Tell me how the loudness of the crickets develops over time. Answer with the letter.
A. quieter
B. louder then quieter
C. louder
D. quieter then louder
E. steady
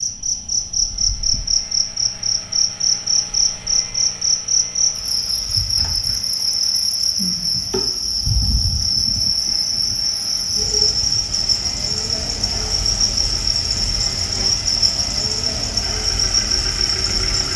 E.